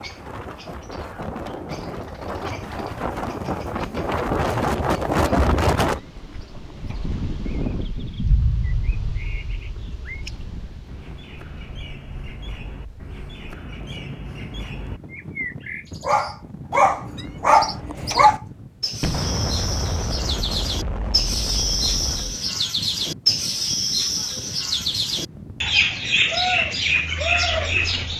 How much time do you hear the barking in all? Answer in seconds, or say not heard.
2 s.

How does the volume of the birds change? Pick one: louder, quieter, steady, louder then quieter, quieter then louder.
louder.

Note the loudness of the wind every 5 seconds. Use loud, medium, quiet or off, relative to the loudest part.
loud, loud, quiet, quiet, quiet, quiet.